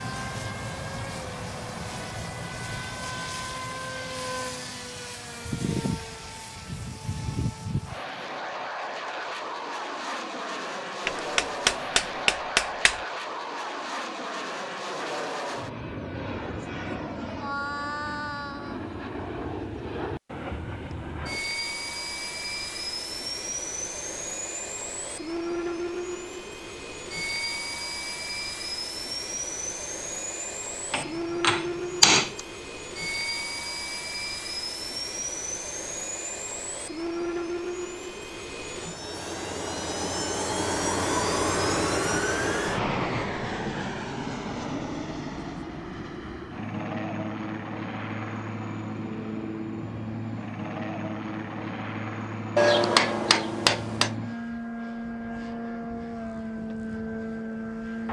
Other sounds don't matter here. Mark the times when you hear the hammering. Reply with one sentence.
The hammering can be heard from 11.1 to 13.0 s, from 30.9 to 32.4 s and from 52.5 to 54.1 s.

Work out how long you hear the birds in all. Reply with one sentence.
You can't hear the birds here.